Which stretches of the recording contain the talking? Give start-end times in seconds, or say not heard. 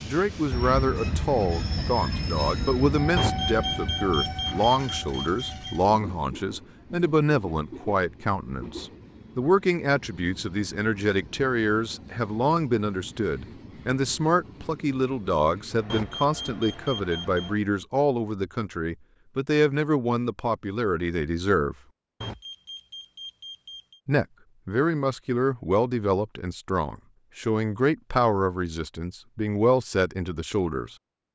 0.0-21.8, 24.1-30.9.